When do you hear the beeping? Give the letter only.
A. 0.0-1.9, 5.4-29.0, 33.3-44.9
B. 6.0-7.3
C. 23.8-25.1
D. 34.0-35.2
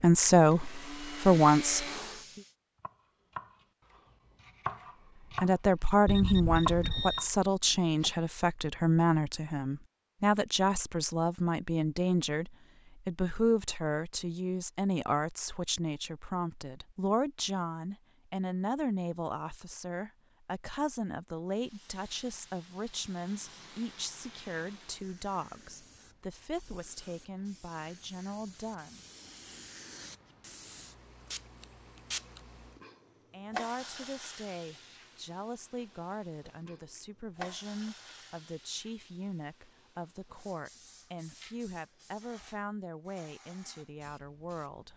B.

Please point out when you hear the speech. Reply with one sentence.
The speech can be heard from 0.0 to 1.9 s, from 5.4 to 29.0 s and from 33.3 to 44.9 s.